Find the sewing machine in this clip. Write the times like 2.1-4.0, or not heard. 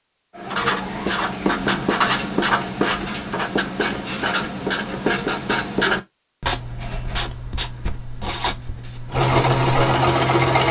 9.1-10.6.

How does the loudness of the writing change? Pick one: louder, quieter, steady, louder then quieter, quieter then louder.
quieter.